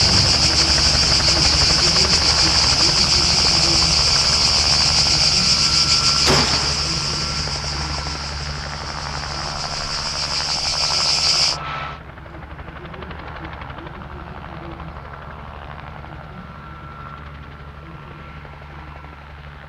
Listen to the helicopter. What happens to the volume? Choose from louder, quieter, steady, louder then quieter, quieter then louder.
quieter.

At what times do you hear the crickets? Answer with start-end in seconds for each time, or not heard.
0.0-11.6.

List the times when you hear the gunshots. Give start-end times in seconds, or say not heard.
6.2-6.9.